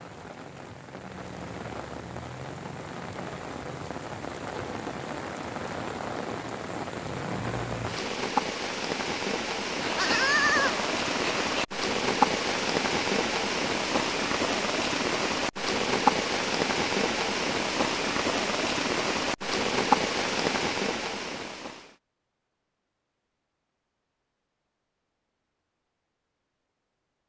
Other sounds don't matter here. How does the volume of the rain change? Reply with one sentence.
The volume of the rain goes up.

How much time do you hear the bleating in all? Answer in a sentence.
The bleating can be heard for 2 seconds in total.